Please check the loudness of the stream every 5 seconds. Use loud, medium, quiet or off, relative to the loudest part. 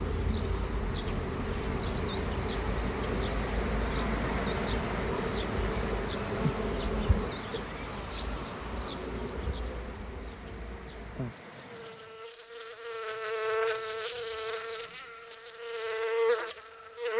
loud, loud, medium, off.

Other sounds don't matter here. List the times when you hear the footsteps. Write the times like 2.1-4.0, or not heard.
not heard.